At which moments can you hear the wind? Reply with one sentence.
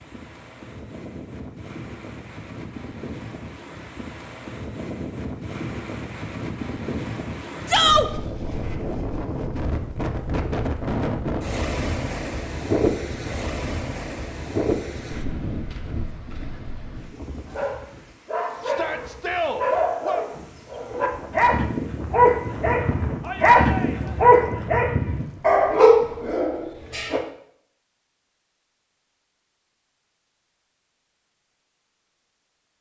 The wind can be heard from 0.0 to 26.4 s.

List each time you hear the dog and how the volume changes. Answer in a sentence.
You can hear the dog from 17.4 to 27.2 s, getting louder.